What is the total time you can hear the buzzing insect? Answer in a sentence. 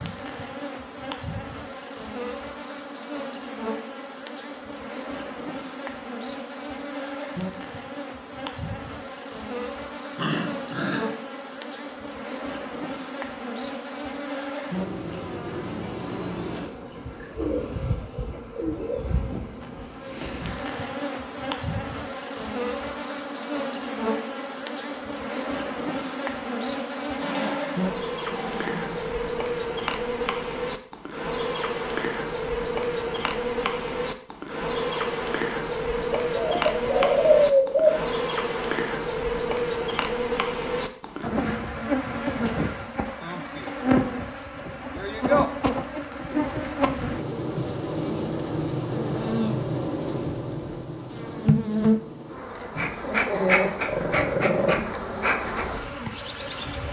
The buzzing insect can be heard for 57 seconds in total.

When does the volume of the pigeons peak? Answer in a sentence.
The loudest moment of the pigeons is at 37 seconds.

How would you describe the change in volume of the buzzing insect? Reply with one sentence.
The loudness of the buzzing insect goes up.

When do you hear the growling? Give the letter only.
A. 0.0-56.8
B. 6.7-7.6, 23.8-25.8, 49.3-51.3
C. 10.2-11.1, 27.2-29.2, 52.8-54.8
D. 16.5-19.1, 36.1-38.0
C.